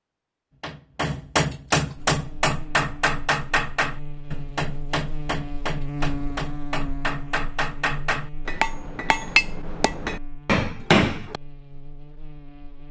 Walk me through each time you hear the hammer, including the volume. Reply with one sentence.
The hammer can be heard from 0.6 to 11.4 s, getting quieter then louder.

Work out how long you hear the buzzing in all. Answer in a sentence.
You can hear the buzzing for 11 seconds altogether.